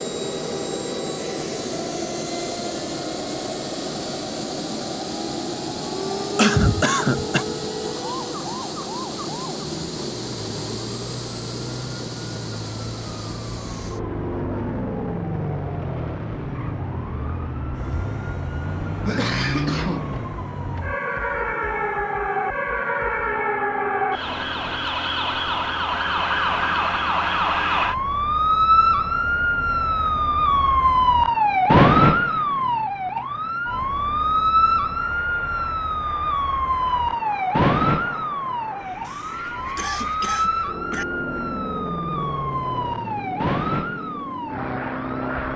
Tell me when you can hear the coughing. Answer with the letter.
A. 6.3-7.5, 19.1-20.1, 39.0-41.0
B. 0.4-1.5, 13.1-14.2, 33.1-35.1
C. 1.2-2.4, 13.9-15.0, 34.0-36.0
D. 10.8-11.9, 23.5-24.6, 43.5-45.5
A.